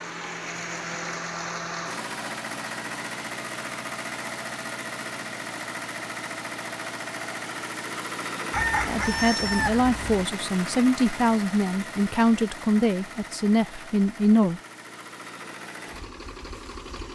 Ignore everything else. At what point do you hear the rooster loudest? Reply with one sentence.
The loudest moment of the rooster is at 9 seconds.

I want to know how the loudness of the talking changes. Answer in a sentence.
The volume of the talking stays about the same.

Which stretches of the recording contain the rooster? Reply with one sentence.
The rooster can be heard from 8.5 to 10.2 s.